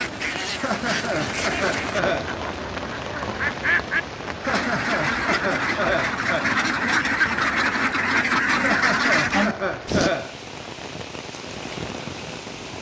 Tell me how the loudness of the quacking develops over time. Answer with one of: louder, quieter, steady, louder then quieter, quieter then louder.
louder.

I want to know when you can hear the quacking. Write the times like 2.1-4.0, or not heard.
0.0-10.1.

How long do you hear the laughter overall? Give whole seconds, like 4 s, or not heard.
6 s.